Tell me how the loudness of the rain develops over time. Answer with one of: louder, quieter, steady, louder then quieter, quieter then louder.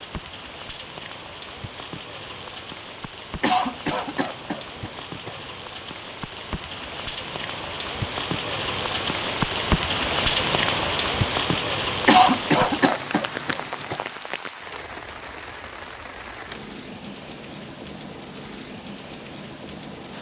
louder then quieter.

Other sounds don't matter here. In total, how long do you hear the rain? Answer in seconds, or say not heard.
20 s.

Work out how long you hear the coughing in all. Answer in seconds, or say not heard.
4 s.